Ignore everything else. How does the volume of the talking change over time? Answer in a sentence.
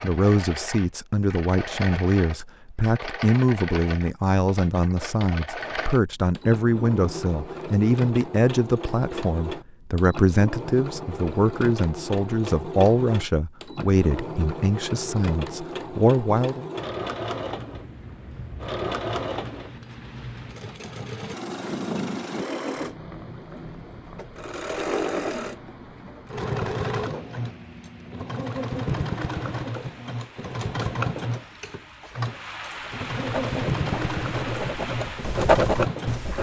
The loudness of the talking stays about the same.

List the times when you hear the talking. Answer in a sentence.
The talking can be heard from 0.0 to 16.6 s.